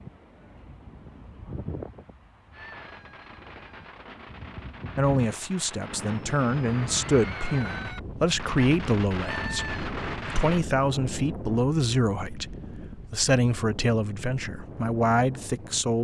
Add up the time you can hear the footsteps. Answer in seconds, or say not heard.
not heard.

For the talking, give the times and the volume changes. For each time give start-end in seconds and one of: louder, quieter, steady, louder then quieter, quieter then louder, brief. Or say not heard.
5.0-15.9 steady.